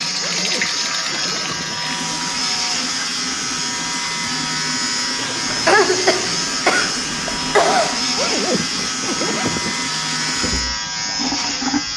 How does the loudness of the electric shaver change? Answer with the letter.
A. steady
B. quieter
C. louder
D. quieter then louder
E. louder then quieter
A.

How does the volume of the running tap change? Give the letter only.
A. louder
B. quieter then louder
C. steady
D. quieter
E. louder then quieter
C.